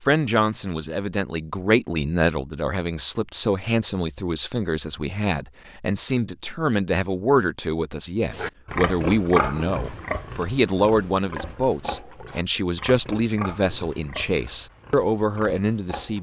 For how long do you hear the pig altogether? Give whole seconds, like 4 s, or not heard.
8 s.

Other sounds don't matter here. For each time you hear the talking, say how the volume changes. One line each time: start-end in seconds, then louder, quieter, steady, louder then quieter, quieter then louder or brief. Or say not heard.
0.0-16.1 steady.